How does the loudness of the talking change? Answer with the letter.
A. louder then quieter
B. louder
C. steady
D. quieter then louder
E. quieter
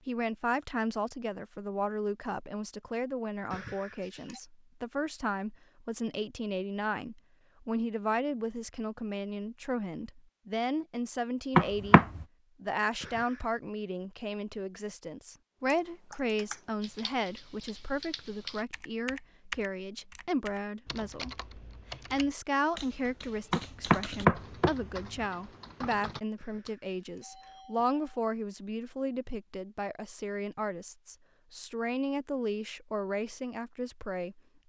C.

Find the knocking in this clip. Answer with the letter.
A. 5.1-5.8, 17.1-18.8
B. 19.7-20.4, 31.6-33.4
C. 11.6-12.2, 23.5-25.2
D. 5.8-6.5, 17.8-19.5
C.